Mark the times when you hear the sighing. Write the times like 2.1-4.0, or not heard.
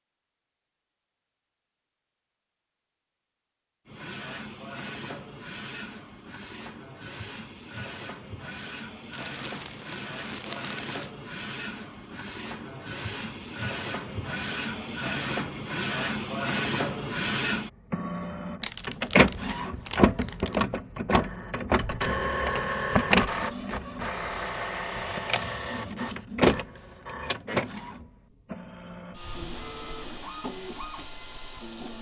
not heard.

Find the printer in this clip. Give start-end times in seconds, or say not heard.
3.9-31.9.